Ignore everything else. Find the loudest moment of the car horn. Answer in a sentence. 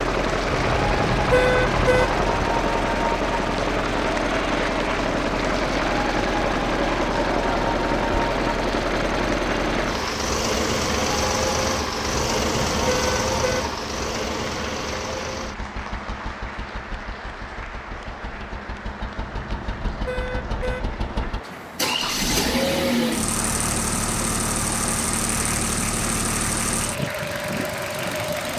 The volume of the car horn peaks at 1 second.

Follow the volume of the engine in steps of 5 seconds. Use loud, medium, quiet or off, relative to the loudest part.
loud, loud, loud, quiet, loud, loud.